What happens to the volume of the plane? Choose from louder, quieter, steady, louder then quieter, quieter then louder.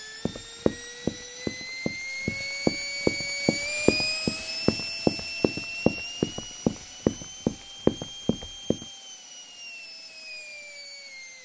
louder then quieter.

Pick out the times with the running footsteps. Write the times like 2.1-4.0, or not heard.
0.2-8.8.